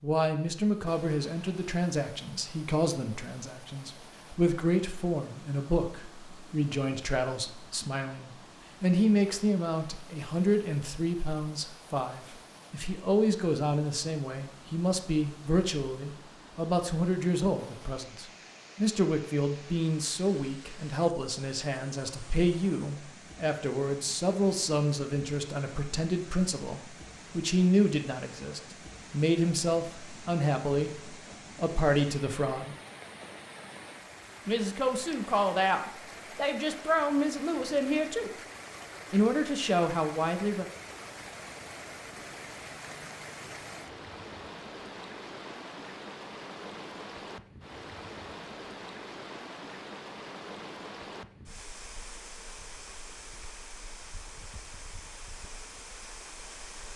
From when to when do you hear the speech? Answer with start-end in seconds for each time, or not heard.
0.0-32.8, 34.5-38.3, 39.1-40.6.